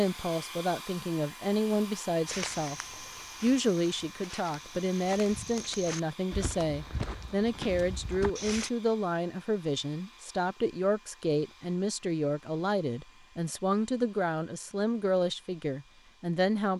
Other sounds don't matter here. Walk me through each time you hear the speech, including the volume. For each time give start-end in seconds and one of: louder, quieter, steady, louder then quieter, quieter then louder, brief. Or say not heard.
0.0-2.8 brief
3.4-16.7 steady.